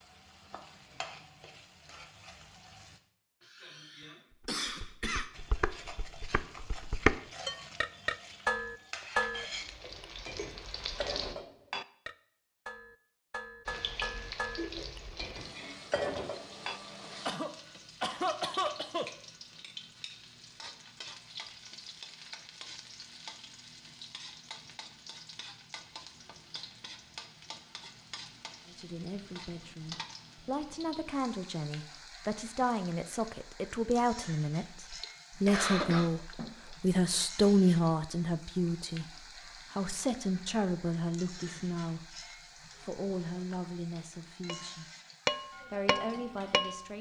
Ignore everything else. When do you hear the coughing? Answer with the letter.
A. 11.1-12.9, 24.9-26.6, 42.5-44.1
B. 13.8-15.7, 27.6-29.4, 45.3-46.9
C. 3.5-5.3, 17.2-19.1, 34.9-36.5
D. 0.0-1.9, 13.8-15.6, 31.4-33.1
C.